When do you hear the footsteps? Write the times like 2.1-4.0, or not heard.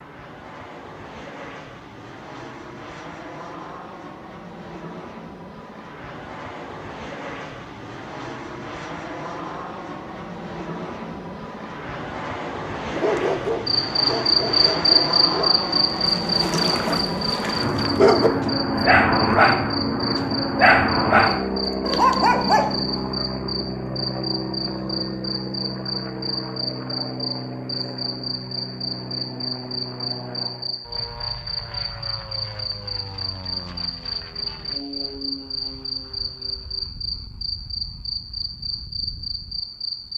not heard.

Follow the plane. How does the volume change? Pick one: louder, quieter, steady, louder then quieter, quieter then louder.
louder then quieter.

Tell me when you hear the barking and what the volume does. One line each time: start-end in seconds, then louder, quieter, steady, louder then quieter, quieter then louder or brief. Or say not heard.
12.9-19.7 quieter then louder
20.6-22.8 brief.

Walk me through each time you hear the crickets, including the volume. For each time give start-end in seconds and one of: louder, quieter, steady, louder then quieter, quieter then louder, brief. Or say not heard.
13.7-40.1 quieter.